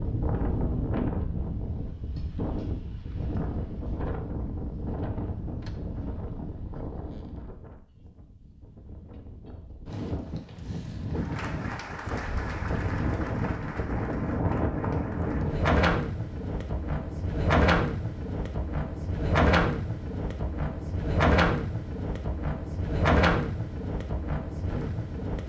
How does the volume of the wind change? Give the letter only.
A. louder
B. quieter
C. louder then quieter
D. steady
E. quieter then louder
E.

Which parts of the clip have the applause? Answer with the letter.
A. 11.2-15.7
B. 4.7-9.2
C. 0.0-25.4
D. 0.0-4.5
A.